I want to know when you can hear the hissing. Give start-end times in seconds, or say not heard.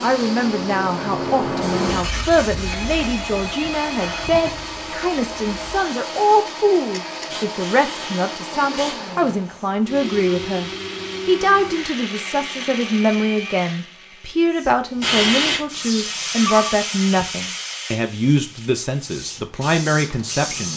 0.0-9.7, 14.6-20.7.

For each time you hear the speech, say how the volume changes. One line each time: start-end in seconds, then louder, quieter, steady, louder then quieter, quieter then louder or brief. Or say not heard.
0.0-20.7 steady.